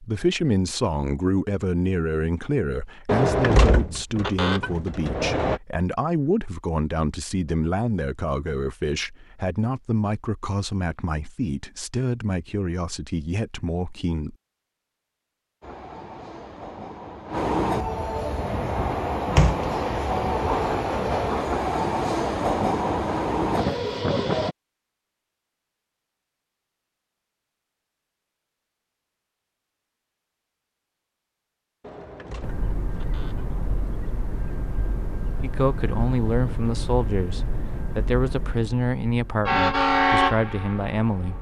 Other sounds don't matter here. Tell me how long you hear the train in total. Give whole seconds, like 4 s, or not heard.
18 s.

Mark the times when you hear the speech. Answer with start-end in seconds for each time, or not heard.
0.0-14.3, 35.4-41.3.